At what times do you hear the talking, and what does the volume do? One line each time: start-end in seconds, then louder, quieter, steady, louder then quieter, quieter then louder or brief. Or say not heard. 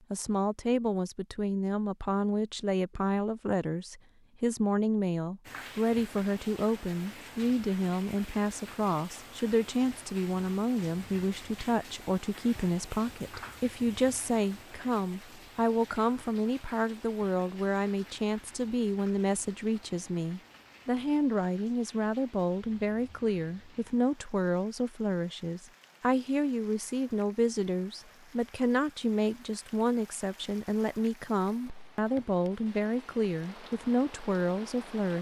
0.1-35.1 steady.